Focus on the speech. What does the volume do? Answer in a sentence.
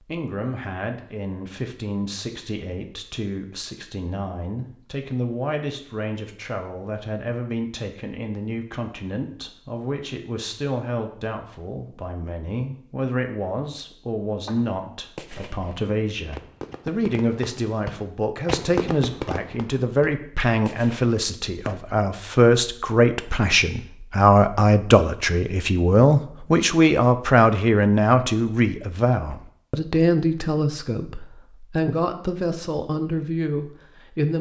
The volume of the speech goes up.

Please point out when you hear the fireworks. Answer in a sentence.
You can hear the fireworks from 14.4 to 21.9 s.